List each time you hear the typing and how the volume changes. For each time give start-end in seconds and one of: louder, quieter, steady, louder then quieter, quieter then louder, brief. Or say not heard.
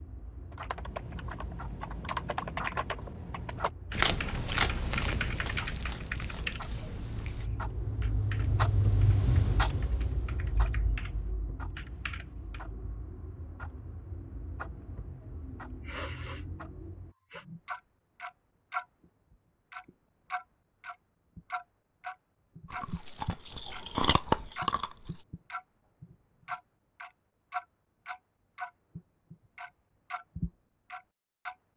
0.5-12.7 quieter.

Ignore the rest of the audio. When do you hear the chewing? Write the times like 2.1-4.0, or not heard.
3.9-7.5, 22.6-25.2.